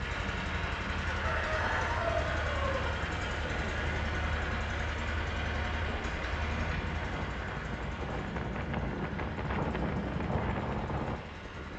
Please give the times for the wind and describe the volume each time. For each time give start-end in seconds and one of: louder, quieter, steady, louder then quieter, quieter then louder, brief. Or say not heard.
0.0-11.7 louder.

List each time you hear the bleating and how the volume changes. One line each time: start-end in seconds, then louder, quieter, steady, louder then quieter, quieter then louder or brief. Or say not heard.
not heard.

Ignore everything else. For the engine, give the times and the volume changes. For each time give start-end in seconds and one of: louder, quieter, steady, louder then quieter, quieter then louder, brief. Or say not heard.
0.0-11.7 quieter.